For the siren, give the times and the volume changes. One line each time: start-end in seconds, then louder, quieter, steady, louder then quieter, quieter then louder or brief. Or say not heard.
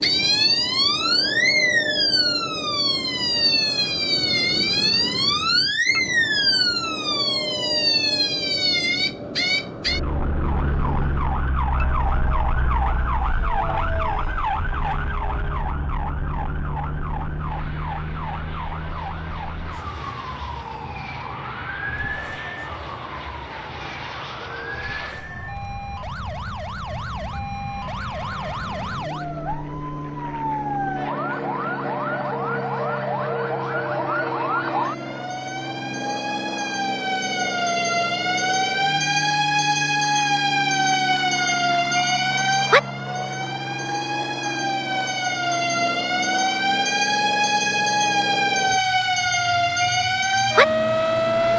0.0-51.5 quieter then louder.